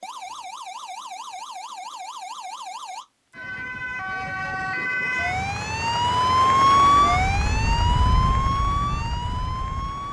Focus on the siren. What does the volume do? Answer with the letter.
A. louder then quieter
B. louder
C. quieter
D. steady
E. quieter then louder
A.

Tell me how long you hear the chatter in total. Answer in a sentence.
You can't hear the chatter here.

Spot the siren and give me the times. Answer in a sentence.
The siren can be heard from 0.0 to 10.0 s.